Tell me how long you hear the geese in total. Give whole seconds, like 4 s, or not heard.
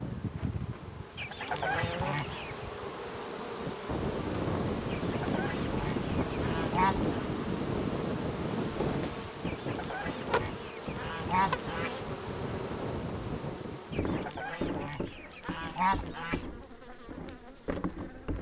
9 s.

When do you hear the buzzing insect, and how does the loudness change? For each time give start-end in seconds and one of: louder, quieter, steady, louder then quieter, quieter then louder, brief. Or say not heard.
0.0-18.3 steady.